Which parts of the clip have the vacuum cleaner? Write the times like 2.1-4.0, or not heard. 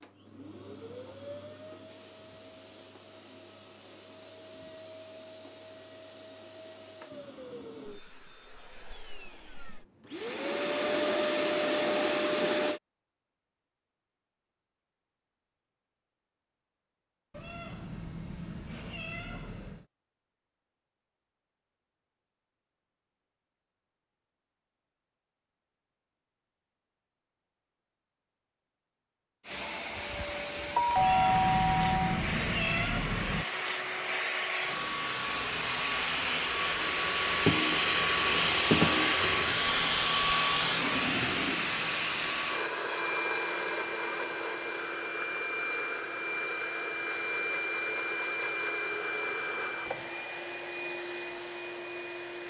0.0-12.8, 29.4-52.4.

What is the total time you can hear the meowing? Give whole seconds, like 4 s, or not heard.
5 s.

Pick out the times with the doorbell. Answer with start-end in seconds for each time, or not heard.
30.8-32.2.